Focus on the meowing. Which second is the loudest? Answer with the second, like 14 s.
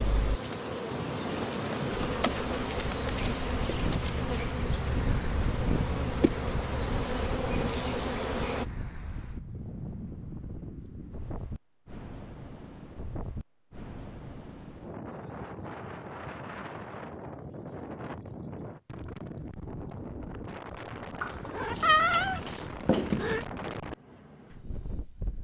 22 s.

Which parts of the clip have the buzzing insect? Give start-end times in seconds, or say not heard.
0.0-8.7.